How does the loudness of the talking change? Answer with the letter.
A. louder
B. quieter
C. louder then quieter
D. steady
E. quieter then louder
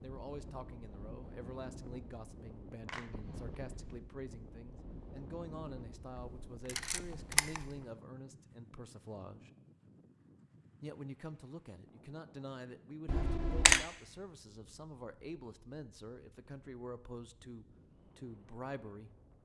D.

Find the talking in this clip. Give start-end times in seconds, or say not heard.
0.0-9.5, 10.8-19.1.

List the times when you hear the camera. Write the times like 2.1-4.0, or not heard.
6.2-7.7, 13.1-13.8.